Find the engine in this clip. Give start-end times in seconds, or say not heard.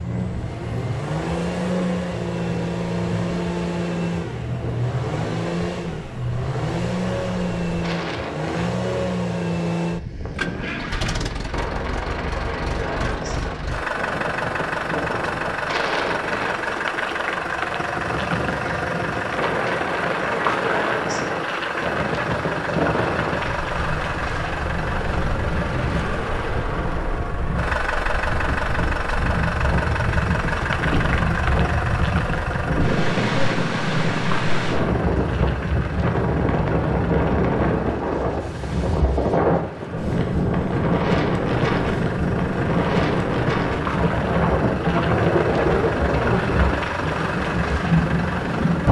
0.0-48.8.